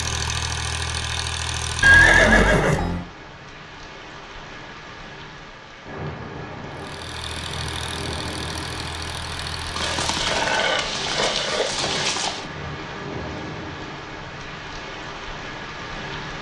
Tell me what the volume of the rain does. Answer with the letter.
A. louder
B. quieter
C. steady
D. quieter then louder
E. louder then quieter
A.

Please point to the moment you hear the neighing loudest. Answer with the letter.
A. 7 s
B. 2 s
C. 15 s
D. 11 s
B.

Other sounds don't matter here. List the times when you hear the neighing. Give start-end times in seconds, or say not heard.
1.8-3.0, 9.8-12.4.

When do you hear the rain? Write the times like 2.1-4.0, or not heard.
0.0-16.3.